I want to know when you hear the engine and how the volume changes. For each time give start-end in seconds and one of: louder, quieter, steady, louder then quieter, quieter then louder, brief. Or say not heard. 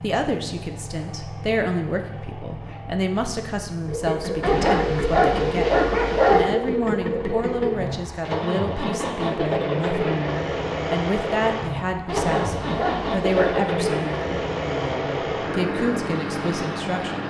0.0-17.2 louder.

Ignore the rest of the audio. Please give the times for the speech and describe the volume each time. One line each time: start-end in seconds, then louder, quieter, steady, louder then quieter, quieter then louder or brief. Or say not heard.
0.0-17.2 steady.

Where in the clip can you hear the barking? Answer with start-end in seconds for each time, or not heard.
4.4-6.5, 12.1-13.7.